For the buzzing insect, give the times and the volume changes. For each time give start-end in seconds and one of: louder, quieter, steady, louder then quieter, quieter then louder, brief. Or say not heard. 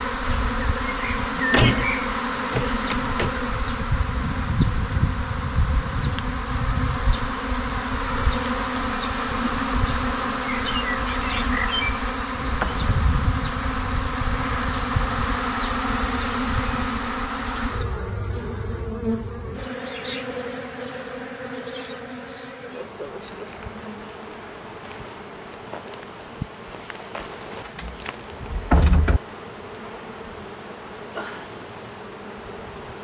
0.0-32.9 quieter.